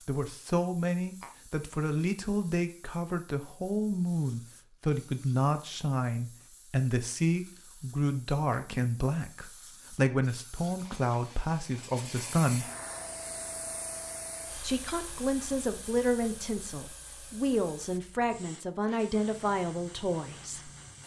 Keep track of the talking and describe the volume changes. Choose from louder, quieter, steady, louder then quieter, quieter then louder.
steady.